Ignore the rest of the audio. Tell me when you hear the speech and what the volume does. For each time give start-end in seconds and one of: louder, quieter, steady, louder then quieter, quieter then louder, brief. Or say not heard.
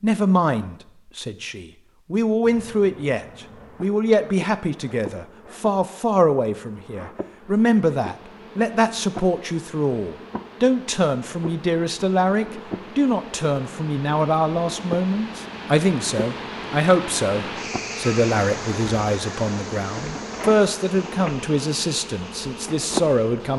0.0-23.5 steady.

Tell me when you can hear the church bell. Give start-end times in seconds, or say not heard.
not heard.